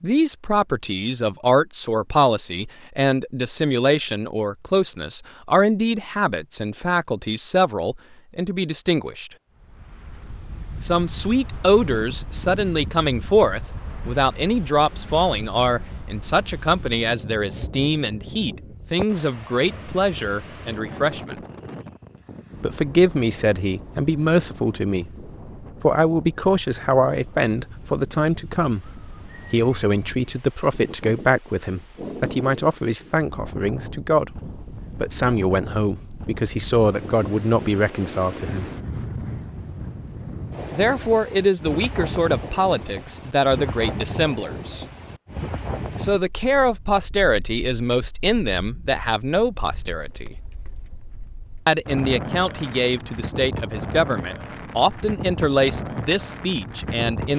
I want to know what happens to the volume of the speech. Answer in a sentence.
The loudness of the speech stays about the same.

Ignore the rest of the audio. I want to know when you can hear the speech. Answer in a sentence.
The speech can be heard from 0.0 to 9.3 s, from 10.8 to 21.4 s, from 22.6 to 38.6 s, from 40.7 to 44.9 s, from 46.0 to 50.4 s and from 51.6 to 57.3 s.